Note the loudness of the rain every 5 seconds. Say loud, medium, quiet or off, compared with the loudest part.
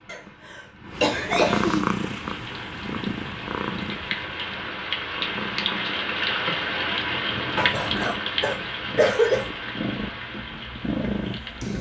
medium, loud, medium.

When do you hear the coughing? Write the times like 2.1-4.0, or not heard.
0.1-1.9, 7.5-9.4.